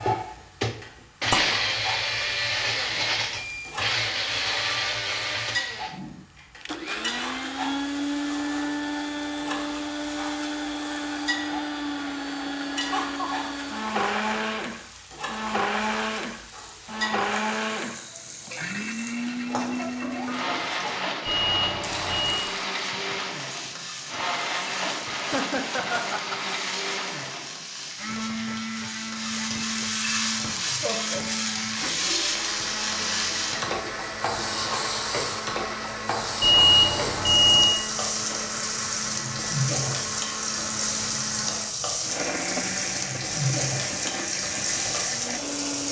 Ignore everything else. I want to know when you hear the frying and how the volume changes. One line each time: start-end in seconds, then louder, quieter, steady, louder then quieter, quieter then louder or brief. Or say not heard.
0.0-45.8 louder.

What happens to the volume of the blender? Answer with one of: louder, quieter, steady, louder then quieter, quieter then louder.
quieter.